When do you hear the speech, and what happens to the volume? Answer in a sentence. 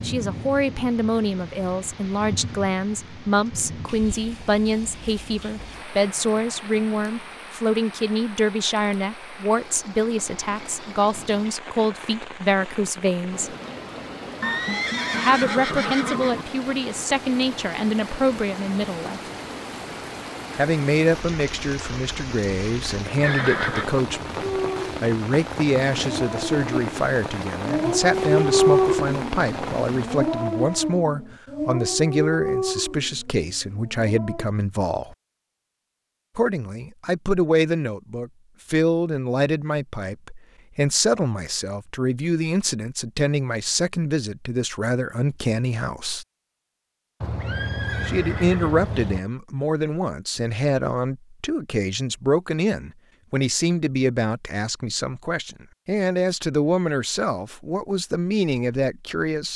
The speech can be heard from 0.0 to 13.6 s, at a steady volume; from 15.2 to 19.2 s, at a steady volume; from 20.6 to 35.1 s, at a steady volume; from 36.4 to 46.2 s, at a steady volume; and from 48.0 to 59.5 s, at a steady volume.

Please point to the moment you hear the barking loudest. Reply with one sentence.
The volume of the barking peaks at 29 seconds.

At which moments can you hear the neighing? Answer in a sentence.
The neighing can be heard from 14.4 to 16.4 s, from 23.2 to 23.9 s and from 47.2 to 49.2 s.